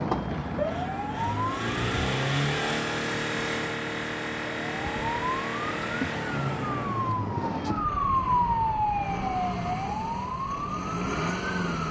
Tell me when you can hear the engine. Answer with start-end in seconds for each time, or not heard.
0.2-11.8.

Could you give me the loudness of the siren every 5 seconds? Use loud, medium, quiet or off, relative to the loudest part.
loud, loud, medium.